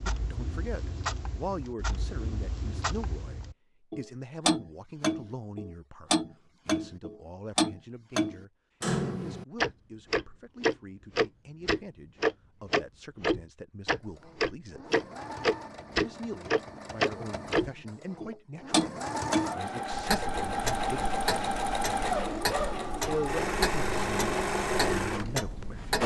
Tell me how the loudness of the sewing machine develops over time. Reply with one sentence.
The volume of the sewing machine goes up.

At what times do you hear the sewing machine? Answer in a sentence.
The sewing machine can be heard from 14.1 to 26.0 s.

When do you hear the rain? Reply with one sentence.
The rain can't be heard in this clip.